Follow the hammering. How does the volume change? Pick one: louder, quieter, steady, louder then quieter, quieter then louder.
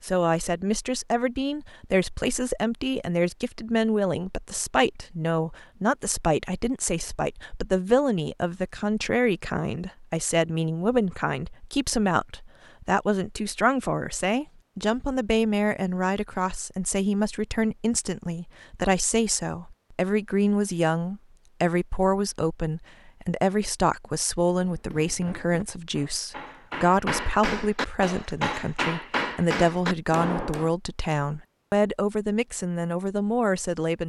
louder.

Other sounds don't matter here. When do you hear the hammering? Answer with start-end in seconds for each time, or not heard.
24.6-30.7.